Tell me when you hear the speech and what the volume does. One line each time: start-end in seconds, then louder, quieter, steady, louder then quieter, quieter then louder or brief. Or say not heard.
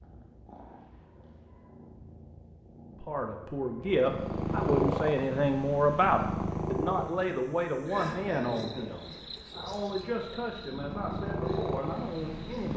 3.0-12.7 quieter.